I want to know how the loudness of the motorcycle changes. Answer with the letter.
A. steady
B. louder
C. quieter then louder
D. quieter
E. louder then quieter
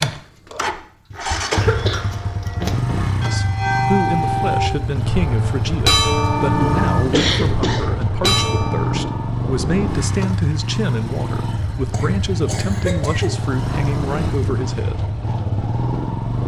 A.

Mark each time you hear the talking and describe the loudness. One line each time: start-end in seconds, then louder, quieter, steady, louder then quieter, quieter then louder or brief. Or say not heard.
3.2-15.1 steady.